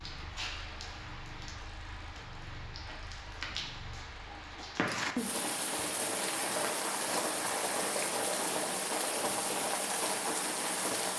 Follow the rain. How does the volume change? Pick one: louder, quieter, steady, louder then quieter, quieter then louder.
louder.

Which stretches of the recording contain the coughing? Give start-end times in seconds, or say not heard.
not heard.